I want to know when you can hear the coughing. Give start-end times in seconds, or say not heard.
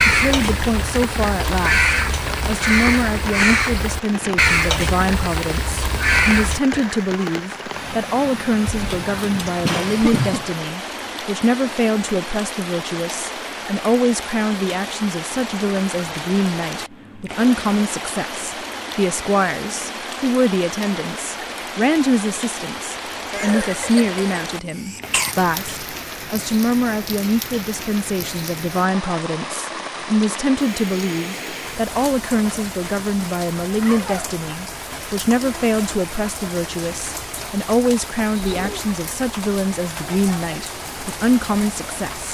8.7-10.6, 23.3-25.4.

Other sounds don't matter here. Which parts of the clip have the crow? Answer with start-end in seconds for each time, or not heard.
0.0-6.6.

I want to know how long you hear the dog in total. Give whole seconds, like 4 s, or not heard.
not heard.